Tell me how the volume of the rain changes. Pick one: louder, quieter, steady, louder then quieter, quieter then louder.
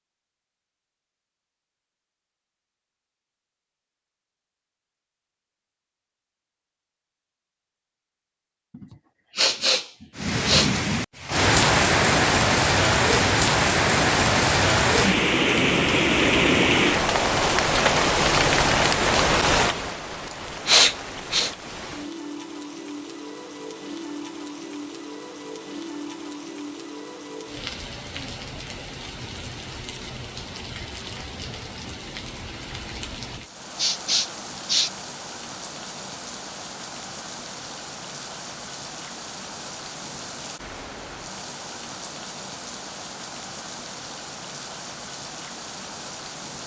quieter.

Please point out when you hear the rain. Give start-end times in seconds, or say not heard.
10.2-46.6.